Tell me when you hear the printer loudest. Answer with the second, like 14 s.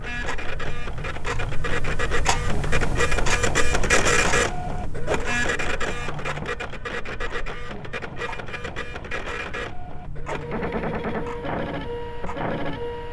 4 s.